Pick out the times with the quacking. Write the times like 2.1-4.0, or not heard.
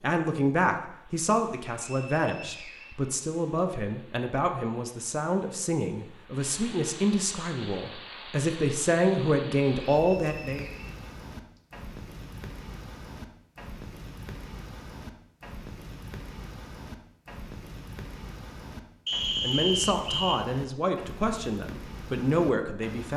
not heard.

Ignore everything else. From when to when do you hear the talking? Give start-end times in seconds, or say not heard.
0.0-10.7, 19.4-23.1.